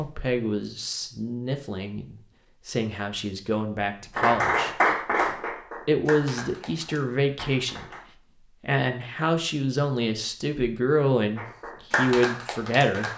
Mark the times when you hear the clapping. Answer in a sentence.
You can hear the clapping from 4.2 to 8.1 s and from 11.3 to 13.1 s.